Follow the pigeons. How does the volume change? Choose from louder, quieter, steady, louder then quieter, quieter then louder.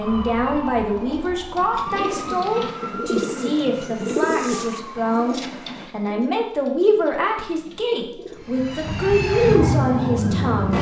louder then quieter.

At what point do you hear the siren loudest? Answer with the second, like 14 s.
10 s.